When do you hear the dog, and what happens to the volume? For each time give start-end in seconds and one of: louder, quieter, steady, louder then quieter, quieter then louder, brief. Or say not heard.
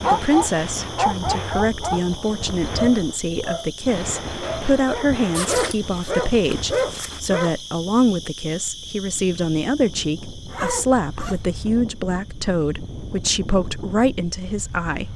0.0-7.5 quieter then louder.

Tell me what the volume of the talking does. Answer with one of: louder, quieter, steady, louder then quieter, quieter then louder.
steady.